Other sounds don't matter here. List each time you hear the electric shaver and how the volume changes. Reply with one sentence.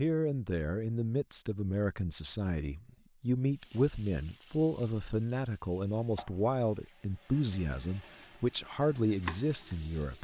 You can't hear the electric shaver here.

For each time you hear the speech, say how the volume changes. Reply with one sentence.
The speech can be heard from 0.0 to 10.1 s, at a steady volume.